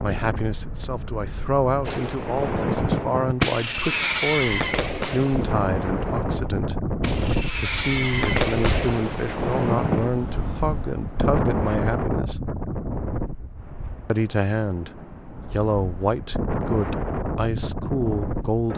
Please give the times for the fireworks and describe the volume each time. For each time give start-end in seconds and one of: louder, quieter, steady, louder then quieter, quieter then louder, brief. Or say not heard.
1.9-10.1 quieter then louder.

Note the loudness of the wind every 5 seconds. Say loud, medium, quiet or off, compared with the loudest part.
medium, loud, loud, loud.